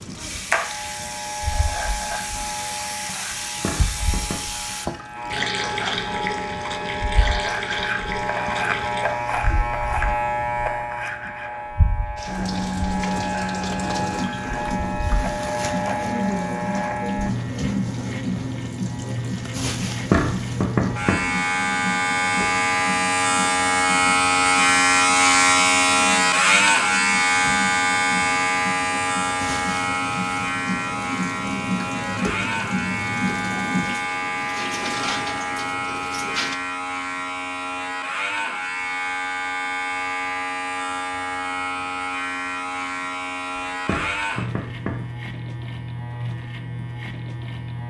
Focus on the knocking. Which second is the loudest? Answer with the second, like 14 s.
20 s.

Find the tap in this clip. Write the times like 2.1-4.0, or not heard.
0.0-9.7, 12.2-36.5.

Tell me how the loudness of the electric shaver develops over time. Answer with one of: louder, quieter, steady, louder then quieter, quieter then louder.
louder then quieter.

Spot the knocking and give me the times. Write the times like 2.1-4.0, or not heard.
3.5-4.5, 19.9-21.4, 43.5-45.1.